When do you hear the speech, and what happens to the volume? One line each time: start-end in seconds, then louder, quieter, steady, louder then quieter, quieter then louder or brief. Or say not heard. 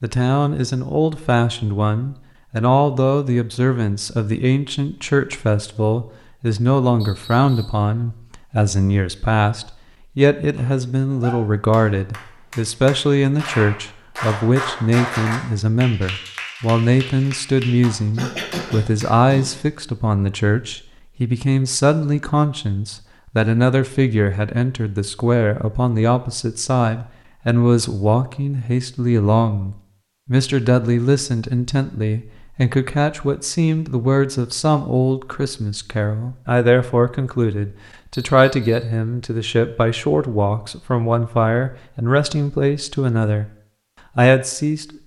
0.0-43.5 steady
44.1-45.0 brief.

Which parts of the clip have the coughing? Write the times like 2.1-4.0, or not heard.
18.1-19.6.